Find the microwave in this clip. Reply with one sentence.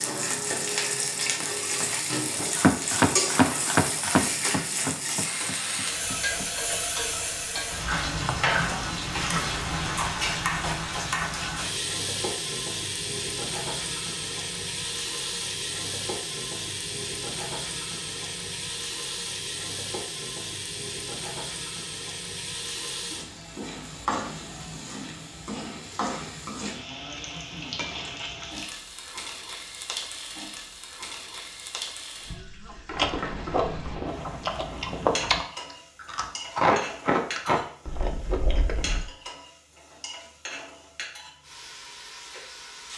The microwave can't be heard in this clip.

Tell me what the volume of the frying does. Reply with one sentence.
The loudness of the frying goes down.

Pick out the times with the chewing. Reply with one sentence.
The chewing can be heard from 32.9 to 39.0 s.